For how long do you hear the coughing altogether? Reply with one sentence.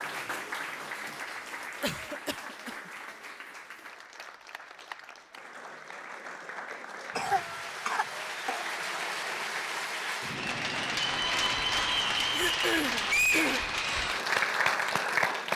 The coughing can be heard for 4 seconds in total.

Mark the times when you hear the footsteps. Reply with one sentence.
The footsteps can't be heard in this clip.